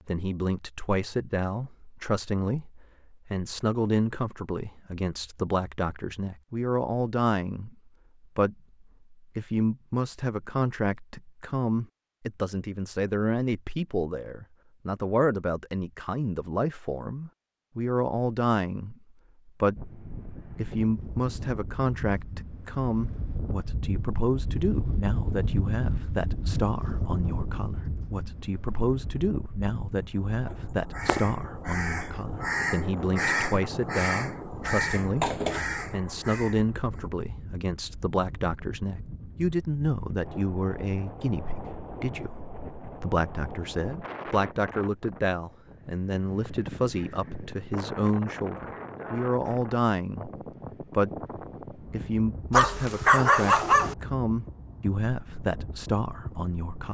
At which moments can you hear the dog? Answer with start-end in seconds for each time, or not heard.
52.5-54.0.